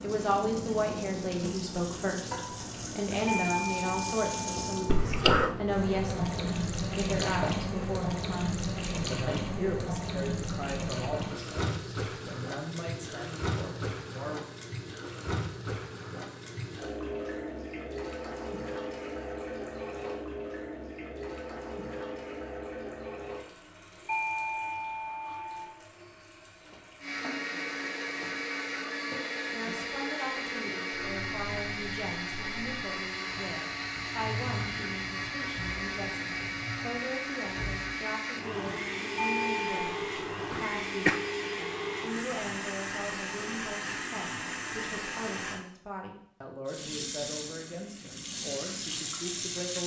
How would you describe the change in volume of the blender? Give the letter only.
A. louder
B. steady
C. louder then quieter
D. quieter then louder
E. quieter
B.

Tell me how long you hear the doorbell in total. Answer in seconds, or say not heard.
4 s.